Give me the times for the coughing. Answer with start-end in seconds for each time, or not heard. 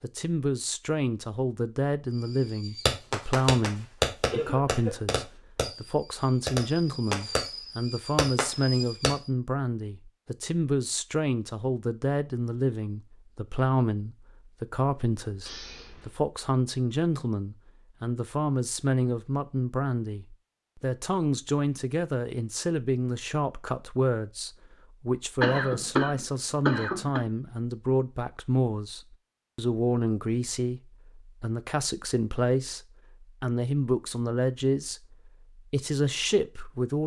4.3-5.0, 15.4-16.1, 25.4-27.2.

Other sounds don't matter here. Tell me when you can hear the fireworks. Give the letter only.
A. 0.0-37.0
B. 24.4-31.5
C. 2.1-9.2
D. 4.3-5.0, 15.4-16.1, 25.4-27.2
C.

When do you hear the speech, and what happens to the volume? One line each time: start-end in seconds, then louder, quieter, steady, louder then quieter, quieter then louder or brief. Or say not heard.
0.0-37.0 steady.